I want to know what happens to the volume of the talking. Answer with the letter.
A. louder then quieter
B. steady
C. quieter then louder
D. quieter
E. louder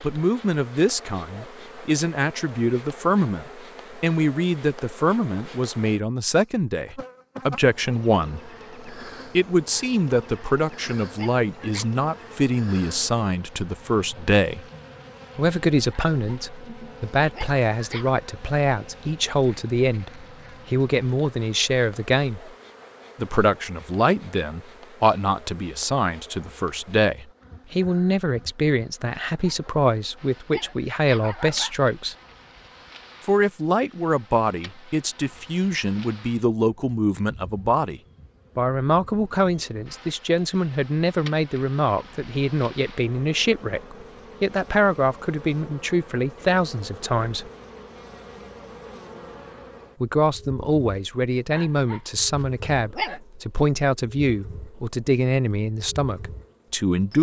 B.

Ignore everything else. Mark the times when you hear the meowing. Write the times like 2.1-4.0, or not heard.
not heard.